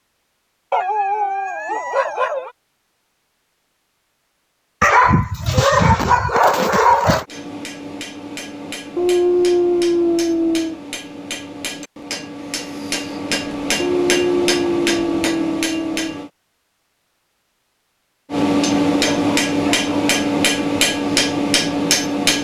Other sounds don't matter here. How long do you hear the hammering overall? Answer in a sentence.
You can hear the hammering for 13 seconds altogether.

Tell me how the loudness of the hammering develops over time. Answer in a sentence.
The loudness of the hammering goes up.